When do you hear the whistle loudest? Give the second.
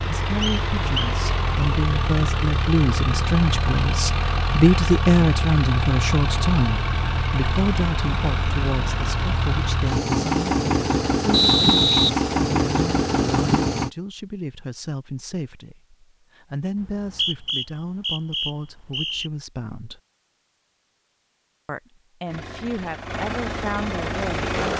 12 s.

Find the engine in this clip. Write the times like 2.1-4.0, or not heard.
0.0-13.9, 22.2-24.7.